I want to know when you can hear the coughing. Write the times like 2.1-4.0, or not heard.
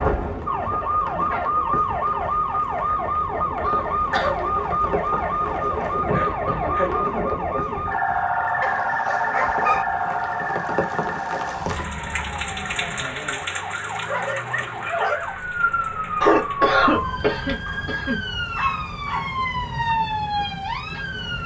3.6-4.3, 16.2-18.2.